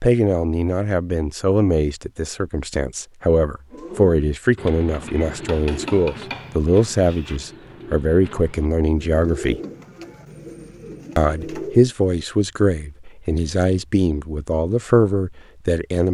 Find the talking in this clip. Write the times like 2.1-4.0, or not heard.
0.0-9.6, 11.2-16.0.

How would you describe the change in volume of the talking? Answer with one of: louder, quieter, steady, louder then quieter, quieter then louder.
steady.